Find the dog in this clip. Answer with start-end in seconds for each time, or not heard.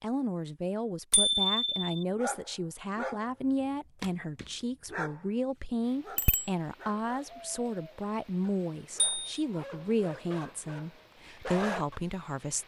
2.1-12.0.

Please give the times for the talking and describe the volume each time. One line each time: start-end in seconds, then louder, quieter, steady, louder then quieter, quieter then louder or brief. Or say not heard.
0.0-12.6 steady.